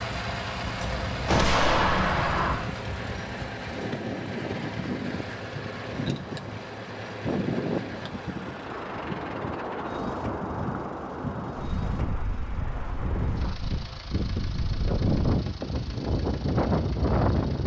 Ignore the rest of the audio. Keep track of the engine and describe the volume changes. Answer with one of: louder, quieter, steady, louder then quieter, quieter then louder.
quieter.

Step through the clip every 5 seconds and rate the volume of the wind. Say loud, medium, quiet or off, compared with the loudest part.
medium, medium, medium, loud.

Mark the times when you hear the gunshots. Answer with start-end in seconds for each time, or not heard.
0.8-2.5.